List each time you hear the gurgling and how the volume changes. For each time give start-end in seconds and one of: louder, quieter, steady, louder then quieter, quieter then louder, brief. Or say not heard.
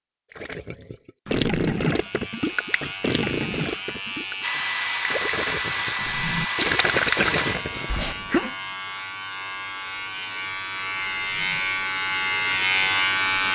0.3-8.2 quieter then louder.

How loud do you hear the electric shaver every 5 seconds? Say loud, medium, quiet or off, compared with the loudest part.
medium, medium, loud.